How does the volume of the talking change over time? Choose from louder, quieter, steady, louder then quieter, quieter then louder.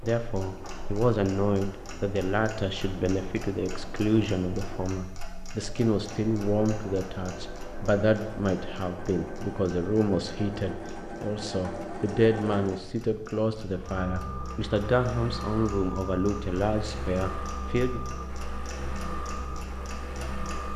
steady.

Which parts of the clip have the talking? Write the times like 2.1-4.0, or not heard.
0.0-18.0.